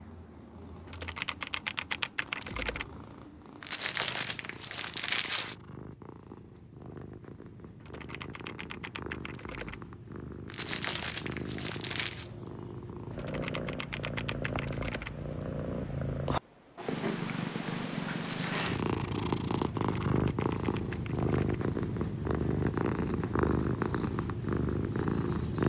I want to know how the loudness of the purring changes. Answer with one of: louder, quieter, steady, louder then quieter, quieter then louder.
louder.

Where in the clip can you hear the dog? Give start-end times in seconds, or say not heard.
not heard.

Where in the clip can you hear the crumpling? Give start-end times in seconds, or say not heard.
3.6-5.5, 10.5-12.3, 18.2-18.9.